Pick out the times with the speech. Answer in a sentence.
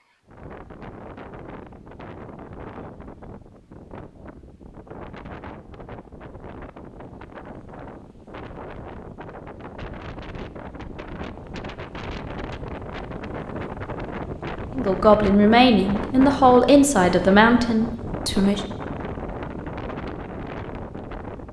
You can hear the speech from 14.8 to 18.6 s.